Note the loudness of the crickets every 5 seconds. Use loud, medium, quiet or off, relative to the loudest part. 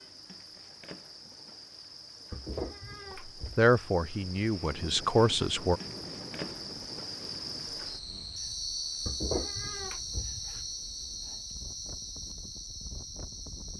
medium, loud, loud.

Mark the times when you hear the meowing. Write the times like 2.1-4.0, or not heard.
2.3-3.7, 9.1-10.7.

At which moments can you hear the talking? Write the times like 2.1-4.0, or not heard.
3.5-5.8.